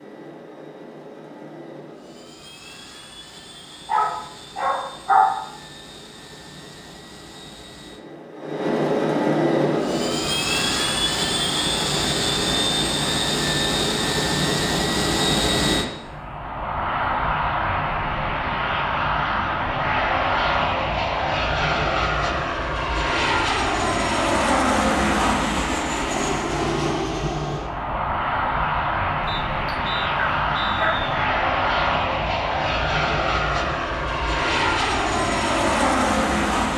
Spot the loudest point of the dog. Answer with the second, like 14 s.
5 s.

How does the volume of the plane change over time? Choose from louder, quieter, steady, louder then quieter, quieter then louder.
louder.